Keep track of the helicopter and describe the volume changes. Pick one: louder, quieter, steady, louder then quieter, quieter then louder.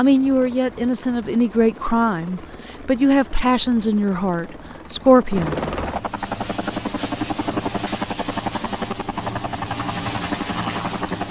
louder.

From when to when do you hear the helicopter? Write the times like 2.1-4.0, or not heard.
0.0-11.2.